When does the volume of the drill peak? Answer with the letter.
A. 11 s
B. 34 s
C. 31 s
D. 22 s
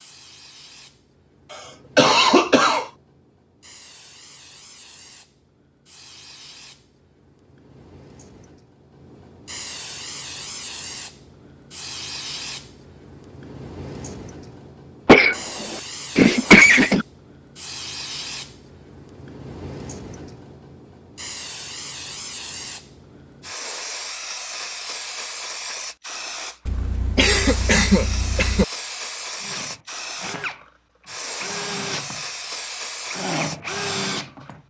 B.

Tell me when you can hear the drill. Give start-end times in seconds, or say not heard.
29.4-34.6.